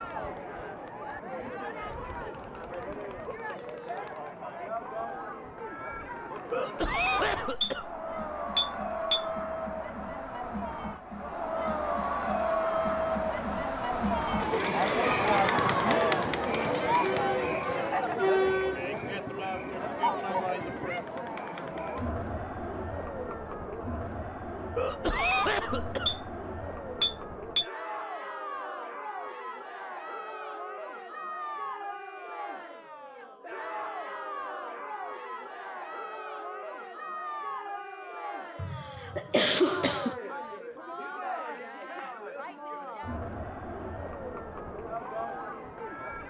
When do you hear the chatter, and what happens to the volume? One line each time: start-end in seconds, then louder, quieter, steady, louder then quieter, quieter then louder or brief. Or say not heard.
0.0-46.2 louder then quieter.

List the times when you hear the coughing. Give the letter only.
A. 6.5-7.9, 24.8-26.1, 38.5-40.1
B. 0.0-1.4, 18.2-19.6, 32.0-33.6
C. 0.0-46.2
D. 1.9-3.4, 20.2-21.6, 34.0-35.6
A.